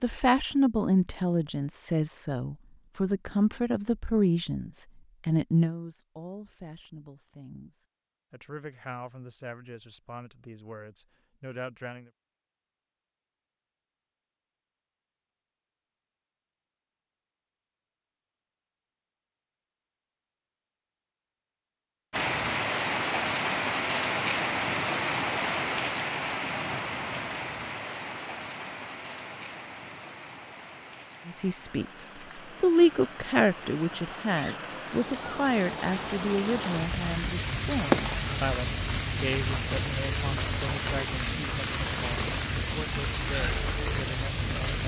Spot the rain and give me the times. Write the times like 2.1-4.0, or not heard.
22.1-44.8.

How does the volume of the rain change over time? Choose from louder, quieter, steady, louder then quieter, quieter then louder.
quieter then louder.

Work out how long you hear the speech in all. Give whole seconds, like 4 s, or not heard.
24 s.